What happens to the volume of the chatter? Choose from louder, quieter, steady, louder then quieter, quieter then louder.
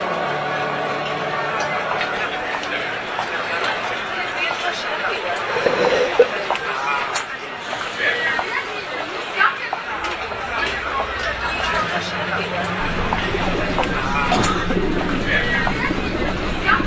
steady.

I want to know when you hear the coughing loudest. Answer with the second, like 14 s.
6 s.